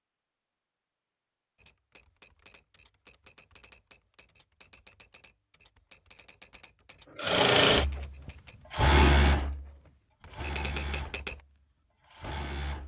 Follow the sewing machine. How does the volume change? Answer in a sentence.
The volume of the sewing machine goes down, then up.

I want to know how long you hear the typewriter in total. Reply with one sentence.
You can hear the typewriter for 10 seconds altogether.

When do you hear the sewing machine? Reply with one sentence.
You can hear the sewing machine from 7.2 to 12.8 s.